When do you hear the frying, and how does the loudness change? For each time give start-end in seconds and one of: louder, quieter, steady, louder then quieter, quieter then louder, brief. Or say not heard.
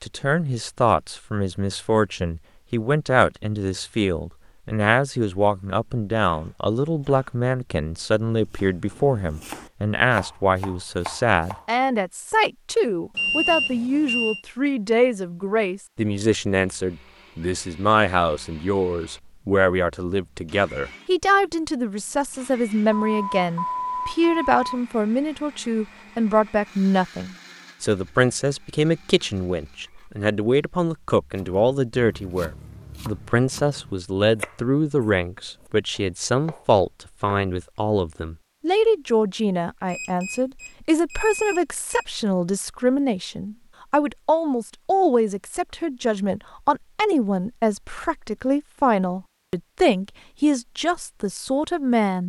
not heard.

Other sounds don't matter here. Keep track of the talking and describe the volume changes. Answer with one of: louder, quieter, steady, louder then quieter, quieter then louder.
steady.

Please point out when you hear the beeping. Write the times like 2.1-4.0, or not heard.
13.2-14.4, 22.9-24.8, 39.9-42.0.